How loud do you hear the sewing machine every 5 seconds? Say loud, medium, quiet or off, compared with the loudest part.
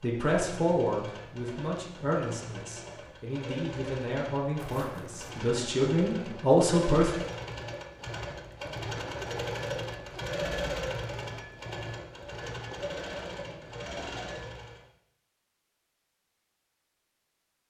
medium, loud, loud, off.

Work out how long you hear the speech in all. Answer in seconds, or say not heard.
7 s.